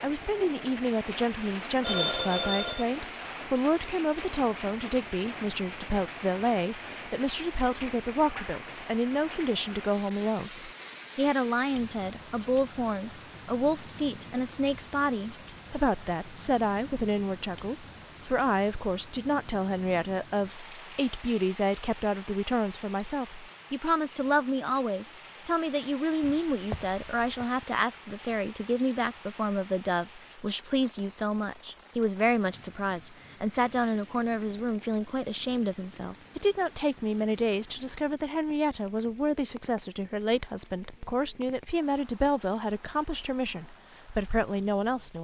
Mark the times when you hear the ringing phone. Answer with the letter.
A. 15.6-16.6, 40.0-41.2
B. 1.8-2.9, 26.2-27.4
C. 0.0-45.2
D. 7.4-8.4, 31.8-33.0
B.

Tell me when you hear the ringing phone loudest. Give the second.
2 s.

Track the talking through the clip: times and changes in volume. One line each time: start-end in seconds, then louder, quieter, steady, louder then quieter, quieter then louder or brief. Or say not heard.
0.0-45.2 steady.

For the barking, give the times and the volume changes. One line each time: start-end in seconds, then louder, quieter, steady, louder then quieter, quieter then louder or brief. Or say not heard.
not heard.